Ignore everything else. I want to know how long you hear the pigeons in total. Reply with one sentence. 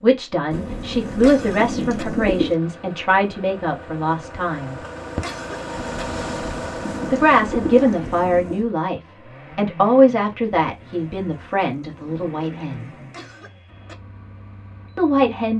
You can hear the pigeons for 8 seconds altogether.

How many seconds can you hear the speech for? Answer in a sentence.
You can hear the speech for 11 seconds altogether.